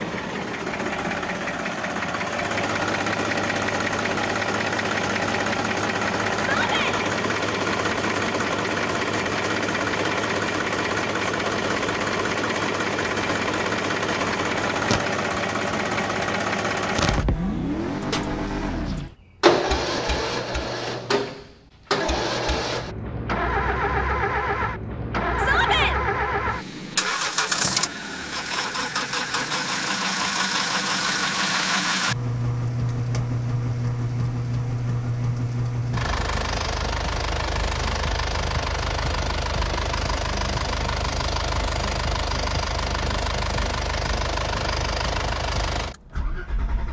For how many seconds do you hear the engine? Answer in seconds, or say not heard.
47 s.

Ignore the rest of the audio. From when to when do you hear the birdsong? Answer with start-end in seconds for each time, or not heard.
not heard.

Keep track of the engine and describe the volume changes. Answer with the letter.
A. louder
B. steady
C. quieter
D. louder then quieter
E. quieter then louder
B.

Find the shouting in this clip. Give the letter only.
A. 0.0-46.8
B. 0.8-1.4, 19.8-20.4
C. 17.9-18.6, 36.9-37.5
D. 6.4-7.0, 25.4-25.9
D.